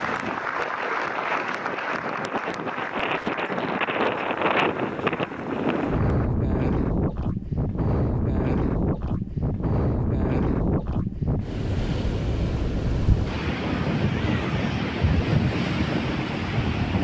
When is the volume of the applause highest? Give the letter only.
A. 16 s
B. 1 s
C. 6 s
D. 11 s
B.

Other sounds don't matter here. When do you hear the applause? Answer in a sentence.
You can hear the applause from 0.0 to 6.3 s.